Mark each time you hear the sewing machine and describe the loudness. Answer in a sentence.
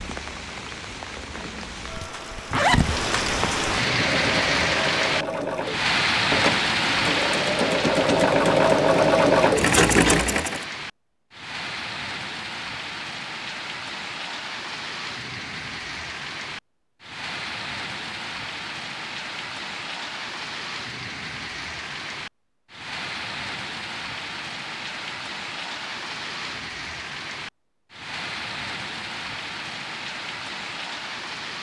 You can hear the sewing machine from 3.7 to 10.7 s, getting louder.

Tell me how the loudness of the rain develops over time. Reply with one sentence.
The volume of the rain goes down.